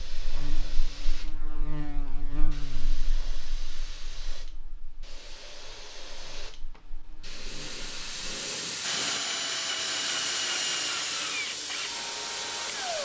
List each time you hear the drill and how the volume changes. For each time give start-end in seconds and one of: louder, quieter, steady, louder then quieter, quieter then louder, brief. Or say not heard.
8.8-13.0 quieter.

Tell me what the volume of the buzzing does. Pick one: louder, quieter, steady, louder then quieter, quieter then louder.
quieter then louder.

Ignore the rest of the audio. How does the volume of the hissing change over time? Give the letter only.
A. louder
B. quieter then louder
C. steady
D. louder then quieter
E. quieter
A.